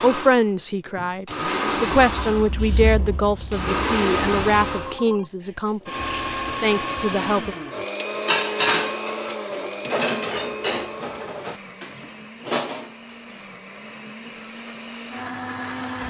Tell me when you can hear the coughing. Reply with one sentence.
You can't hear the coughing here.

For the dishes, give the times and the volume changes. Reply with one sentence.
The dishes can be heard from 8.2 to 13.4 s, getting quieter then louder.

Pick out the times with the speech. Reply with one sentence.
The speech can be heard from 0.0 to 7.5 s.